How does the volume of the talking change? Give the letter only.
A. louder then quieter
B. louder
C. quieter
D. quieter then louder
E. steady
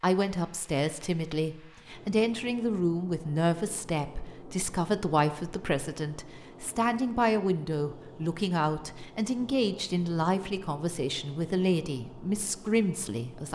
E.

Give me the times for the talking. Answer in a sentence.
You can hear the talking from 0.0 to 13.5 s.